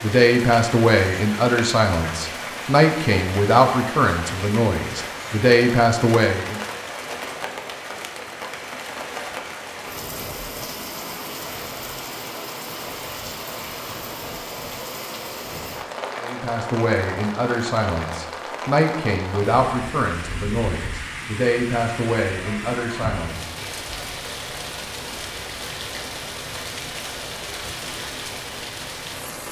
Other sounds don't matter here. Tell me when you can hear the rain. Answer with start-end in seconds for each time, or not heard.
0.0-29.4.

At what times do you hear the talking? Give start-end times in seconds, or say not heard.
0.0-6.6, 16.2-24.1.